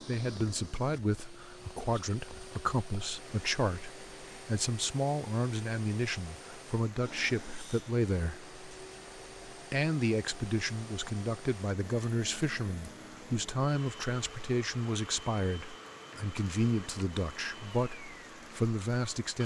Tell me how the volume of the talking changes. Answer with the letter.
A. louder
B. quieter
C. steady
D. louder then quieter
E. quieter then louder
C.